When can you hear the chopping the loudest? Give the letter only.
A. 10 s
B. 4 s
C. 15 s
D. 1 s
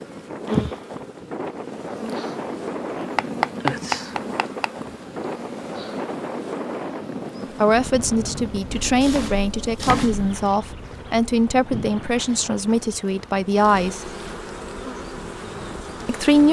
B.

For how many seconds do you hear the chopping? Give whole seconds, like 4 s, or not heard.
3 s.